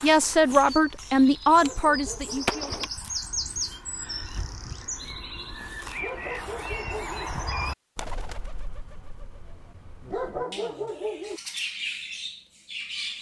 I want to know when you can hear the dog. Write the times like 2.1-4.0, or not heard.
1.5-2.6, 5.9-7.3, 10.0-11.4.